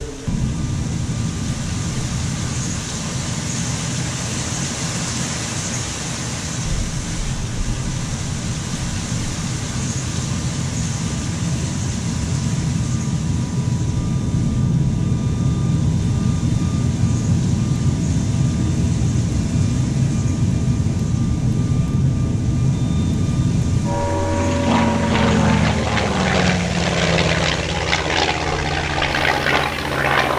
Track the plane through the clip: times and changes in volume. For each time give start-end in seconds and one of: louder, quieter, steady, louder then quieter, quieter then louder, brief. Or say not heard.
0.0-30.3 louder.